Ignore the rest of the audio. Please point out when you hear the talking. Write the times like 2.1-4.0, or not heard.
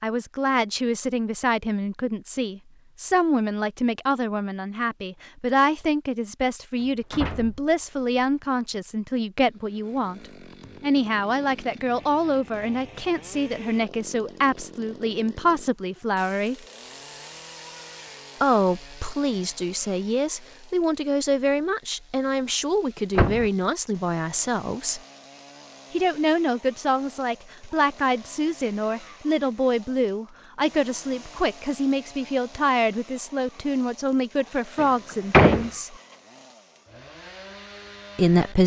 0.0-16.6, 18.4-25.0, 25.9-36.0, 38.1-38.6.